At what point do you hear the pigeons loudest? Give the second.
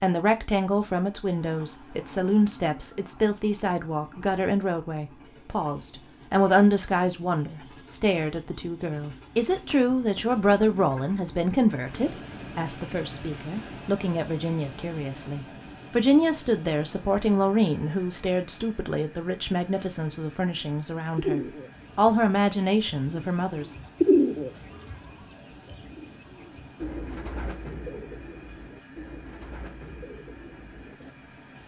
24 s.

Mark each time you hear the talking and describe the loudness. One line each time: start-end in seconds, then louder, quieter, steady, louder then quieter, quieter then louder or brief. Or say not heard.
0.0-23.7 steady.